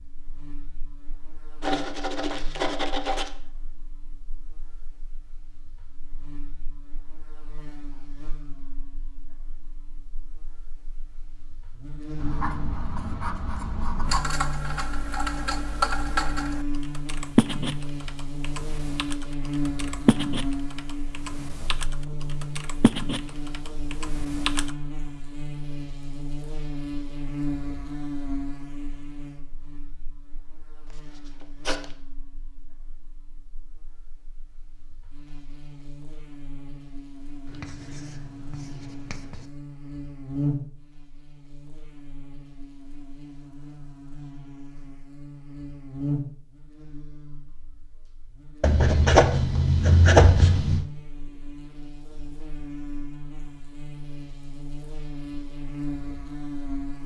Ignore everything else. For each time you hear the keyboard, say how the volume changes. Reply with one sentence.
You can hear the keyboard from 14.1 to 24.8 s, getting quieter then louder.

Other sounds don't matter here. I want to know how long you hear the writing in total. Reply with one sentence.
You can hear the writing for 9 seconds altogether.